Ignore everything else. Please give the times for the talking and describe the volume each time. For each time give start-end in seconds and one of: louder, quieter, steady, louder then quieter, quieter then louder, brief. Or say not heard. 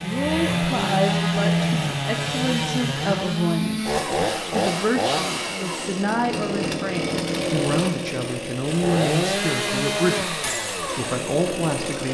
0.0-12.0 steady.